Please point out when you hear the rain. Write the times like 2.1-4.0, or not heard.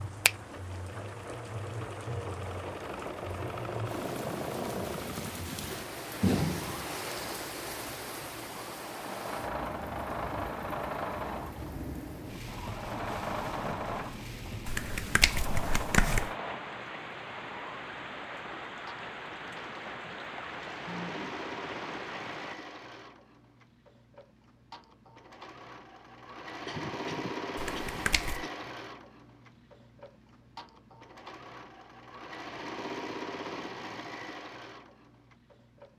0.0-22.6.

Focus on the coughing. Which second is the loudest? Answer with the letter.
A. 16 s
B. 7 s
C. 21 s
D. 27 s
D.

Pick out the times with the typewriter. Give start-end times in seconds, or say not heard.
not heard.